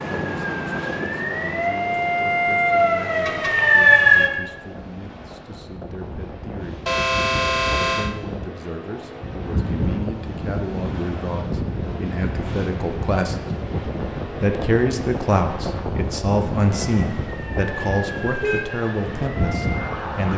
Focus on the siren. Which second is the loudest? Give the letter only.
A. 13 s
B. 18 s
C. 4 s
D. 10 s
C.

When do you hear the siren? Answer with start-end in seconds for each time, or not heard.
0.2-4.3, 16.9-20.3.